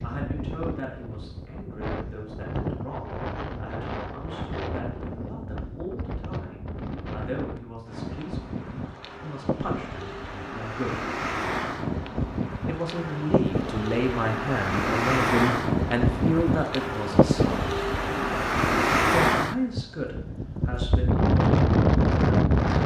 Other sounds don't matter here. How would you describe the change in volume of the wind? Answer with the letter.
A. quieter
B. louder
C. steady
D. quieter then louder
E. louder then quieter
B.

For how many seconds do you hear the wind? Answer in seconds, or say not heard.
23 s.